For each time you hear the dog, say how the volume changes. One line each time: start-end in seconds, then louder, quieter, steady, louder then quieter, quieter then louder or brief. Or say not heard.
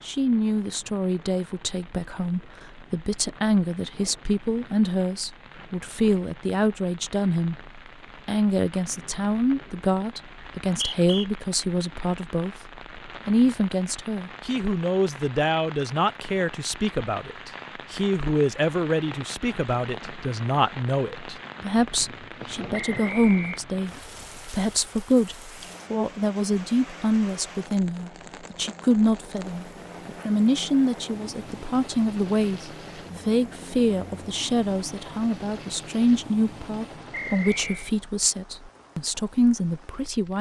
not heard.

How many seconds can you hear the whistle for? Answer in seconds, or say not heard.
2 s.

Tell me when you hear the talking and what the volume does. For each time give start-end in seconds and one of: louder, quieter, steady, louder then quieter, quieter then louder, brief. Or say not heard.
0.1-40.3 steady.